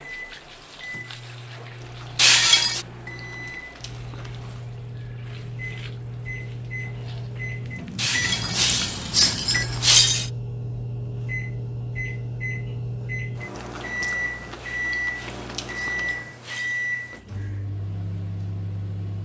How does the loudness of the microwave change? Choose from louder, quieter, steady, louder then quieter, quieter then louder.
louder.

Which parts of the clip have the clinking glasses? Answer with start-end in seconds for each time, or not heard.
2.1-2.9, 8.0-10.3, 14.6-16.9.